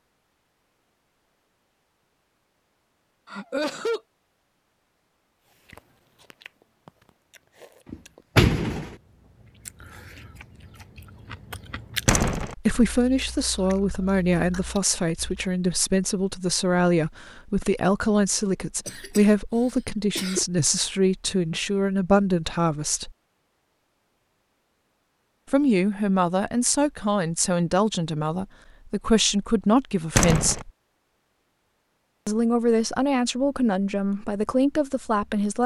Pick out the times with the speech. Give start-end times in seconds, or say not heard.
12.6-23.1, 25.5-30.7, 32.2-35.6.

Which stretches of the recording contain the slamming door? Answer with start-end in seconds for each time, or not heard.
7.9-8.9, 12.1-12.6, 30.1-30.6.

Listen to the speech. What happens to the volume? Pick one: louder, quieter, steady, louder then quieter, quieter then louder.
steady.